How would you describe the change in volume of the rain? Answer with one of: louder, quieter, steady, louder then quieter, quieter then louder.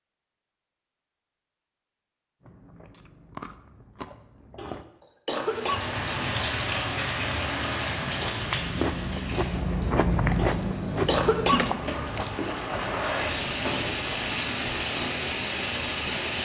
quieter then louder.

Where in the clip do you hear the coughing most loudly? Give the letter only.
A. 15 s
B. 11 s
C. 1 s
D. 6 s
B.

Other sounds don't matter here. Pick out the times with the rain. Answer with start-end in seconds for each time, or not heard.
5.5-16.3.